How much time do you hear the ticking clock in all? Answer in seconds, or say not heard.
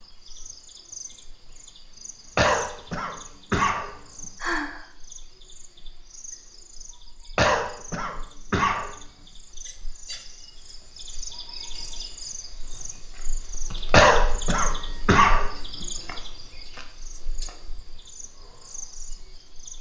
not heard.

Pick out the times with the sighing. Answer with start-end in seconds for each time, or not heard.
4.4-4.8.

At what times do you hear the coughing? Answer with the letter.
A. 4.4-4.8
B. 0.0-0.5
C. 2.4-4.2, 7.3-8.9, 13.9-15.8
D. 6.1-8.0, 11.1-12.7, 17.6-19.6
C.